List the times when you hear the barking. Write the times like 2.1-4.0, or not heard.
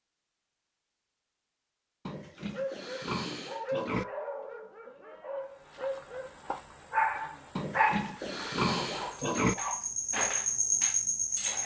2.5-9.8.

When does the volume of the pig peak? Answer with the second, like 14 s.
9 s.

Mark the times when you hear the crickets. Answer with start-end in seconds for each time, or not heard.
5.3-11.6.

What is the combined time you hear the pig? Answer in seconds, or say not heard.
4 s.